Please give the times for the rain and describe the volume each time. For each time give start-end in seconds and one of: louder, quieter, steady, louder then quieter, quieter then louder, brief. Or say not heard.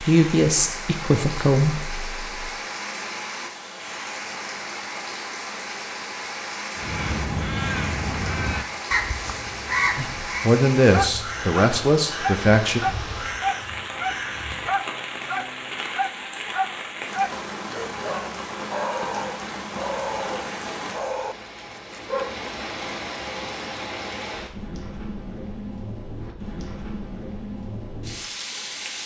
0.0-29.0 steady.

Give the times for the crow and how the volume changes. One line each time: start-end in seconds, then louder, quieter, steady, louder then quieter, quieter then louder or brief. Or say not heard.
6.8-14.7 quieter.